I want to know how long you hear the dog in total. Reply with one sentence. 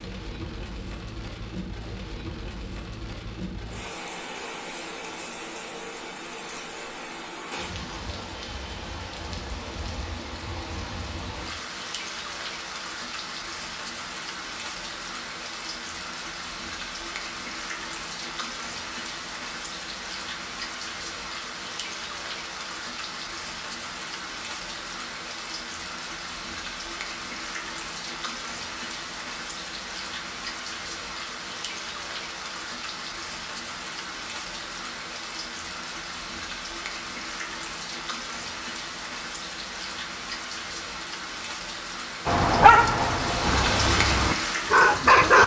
The dog can be heard for 3 seconds in total.